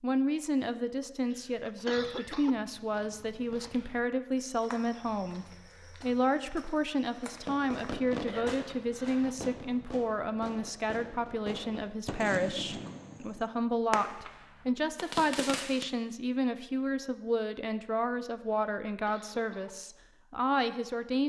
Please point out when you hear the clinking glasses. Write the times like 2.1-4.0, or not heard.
not heard.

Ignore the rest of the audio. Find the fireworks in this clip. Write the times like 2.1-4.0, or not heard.
7.3-15.8.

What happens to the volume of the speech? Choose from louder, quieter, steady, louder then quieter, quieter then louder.
steady.